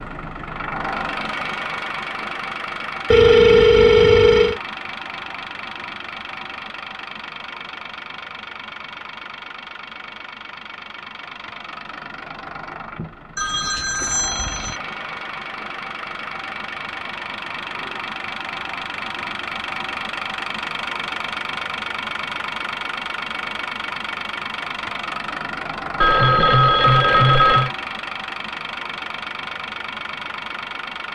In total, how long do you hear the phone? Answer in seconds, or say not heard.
5 s.